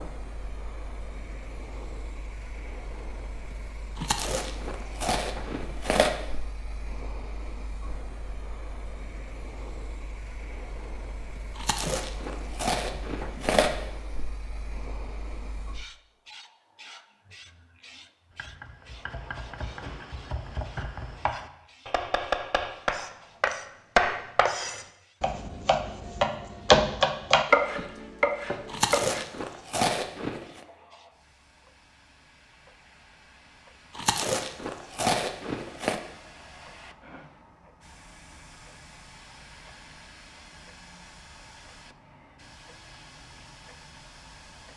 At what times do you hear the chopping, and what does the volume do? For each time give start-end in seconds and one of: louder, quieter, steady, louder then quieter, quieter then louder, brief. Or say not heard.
18.4-29.2 louder.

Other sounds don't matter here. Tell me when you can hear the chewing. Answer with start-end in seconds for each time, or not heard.
4.0-6.2, 11.6-13.8, 28.6-30.6, 34.0-36.0.